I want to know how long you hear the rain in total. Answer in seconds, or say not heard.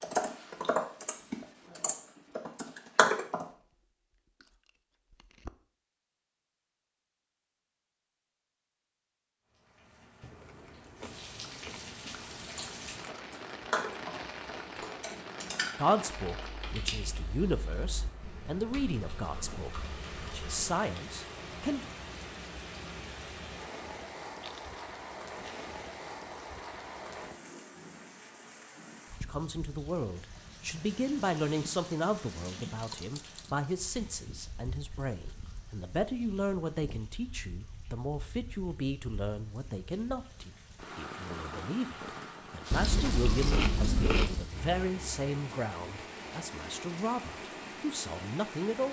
39 s.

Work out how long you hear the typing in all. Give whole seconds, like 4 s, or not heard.
12 s.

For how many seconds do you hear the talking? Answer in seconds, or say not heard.
26 s.